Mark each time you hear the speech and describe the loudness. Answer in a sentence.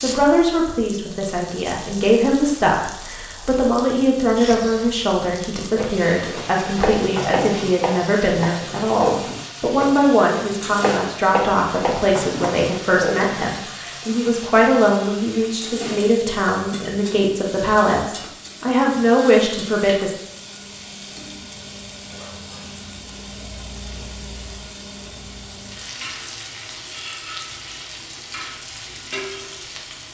The speech can be heard from 0.0 to 20.1 s, at a steady volume.